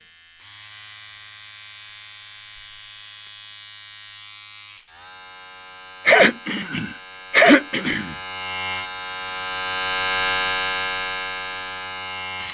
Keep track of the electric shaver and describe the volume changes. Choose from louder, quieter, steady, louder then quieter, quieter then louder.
louder.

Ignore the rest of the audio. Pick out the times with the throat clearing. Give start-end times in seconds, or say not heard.
6.0-8.2.